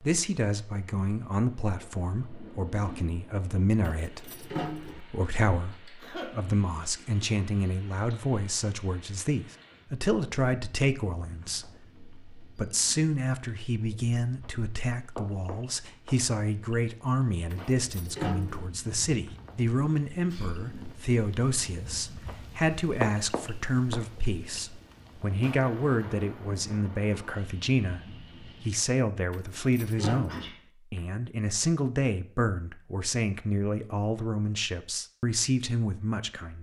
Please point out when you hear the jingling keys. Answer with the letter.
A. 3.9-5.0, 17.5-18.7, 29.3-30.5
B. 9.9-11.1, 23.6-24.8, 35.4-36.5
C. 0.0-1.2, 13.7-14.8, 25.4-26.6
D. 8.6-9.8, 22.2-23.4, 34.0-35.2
A.